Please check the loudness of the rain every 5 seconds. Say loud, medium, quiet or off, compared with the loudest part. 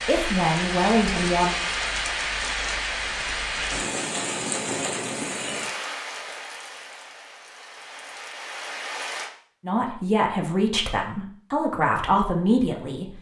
loud, medium, off.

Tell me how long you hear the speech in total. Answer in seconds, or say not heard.
5 s.